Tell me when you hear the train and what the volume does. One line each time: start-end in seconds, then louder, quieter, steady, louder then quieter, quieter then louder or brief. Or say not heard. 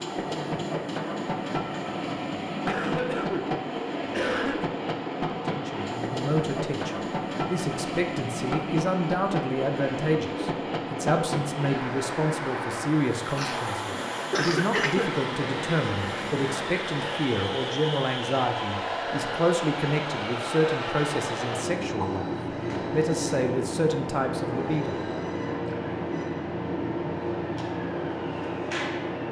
0.0-29.2 steady.